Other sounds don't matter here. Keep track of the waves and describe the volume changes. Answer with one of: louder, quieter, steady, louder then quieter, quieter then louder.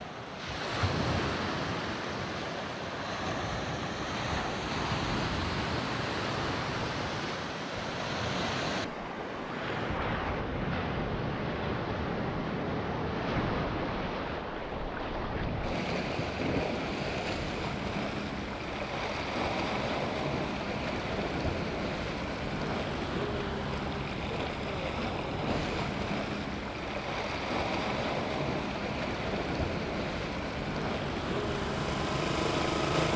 steady.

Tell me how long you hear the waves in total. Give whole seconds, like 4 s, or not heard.
33 s.